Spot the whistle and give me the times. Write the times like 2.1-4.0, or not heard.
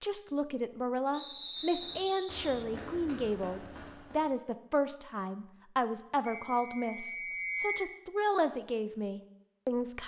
1.1-2.5, 6.2-7.9.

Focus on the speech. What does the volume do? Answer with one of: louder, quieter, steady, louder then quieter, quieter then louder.
steady.